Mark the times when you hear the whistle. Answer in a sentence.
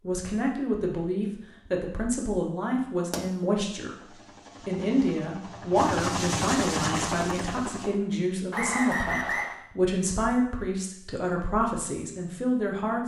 You can hear the whistle from 8.5 to 9.6 s.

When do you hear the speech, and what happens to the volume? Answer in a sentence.
The speech can be heard from 0.0 to 13.0 s, at a steady volume.